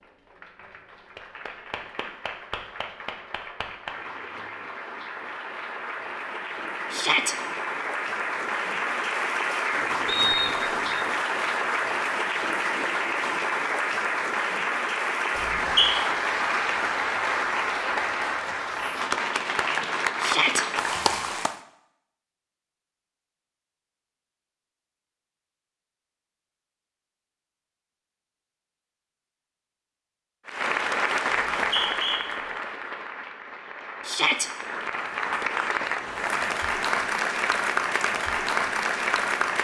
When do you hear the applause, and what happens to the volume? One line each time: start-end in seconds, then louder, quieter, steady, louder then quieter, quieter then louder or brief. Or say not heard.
0.0-21.6 louder
30.4-39.5 quieter then louder.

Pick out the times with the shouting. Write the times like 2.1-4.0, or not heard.
6.9-7.3, 20.2-20.6, 34.0-34.5.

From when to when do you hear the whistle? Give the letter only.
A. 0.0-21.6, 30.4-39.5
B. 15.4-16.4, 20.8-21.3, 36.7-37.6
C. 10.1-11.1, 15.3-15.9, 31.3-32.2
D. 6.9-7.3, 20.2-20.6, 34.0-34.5
C.